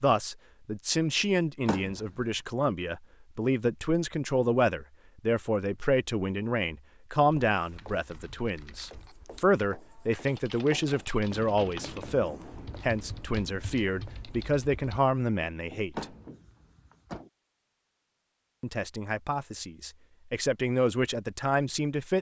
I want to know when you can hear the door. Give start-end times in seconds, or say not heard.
1.6-2.2, 15.9-17.2.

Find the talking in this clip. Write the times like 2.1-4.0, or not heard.
0.0-16.1, 18.6-22.1.